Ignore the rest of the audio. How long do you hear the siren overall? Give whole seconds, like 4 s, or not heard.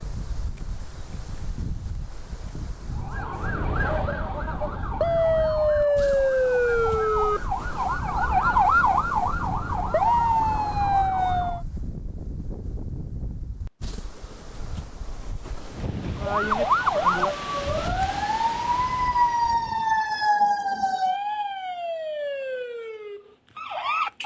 17 s.